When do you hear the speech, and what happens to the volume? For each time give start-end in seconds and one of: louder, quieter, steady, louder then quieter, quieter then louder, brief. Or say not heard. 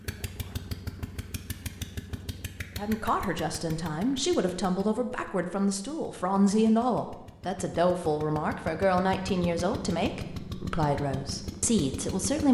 2.8-12.5 steady.